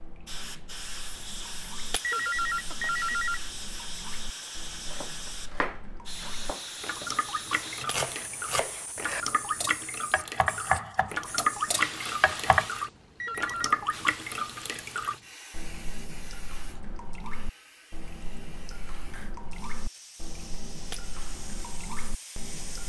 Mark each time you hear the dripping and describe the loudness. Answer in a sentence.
You can hear the dripping from 0.0 to 22.8 s, getting louder then quieter.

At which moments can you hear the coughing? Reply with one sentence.
The coughing can't be heard in this clip.